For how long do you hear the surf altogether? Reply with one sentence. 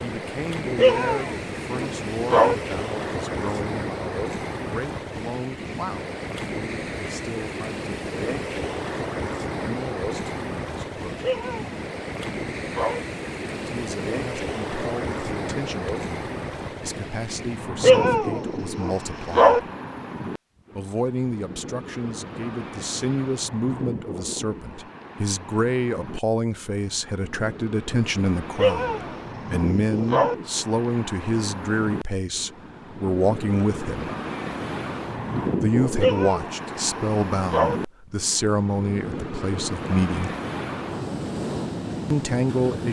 You can hear the surf for 43 seconds altogether.